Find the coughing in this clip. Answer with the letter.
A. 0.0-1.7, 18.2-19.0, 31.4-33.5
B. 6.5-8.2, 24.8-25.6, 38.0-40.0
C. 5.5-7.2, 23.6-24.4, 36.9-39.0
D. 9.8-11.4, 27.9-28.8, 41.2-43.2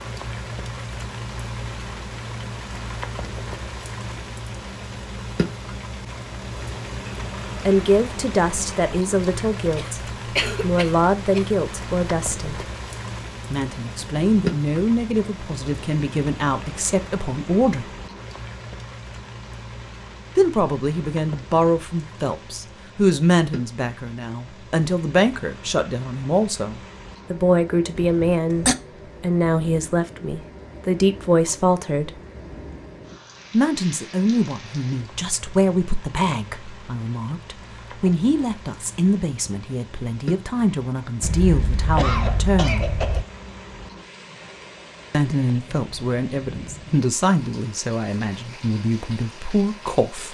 D.